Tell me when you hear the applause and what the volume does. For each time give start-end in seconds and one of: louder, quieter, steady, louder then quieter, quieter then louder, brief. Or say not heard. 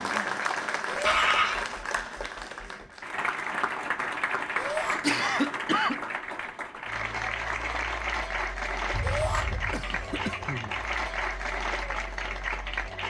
0.0-13.0 steady.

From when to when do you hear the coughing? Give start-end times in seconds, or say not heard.
1.1-1.6, 5.0-6.0, 8.9-10.8.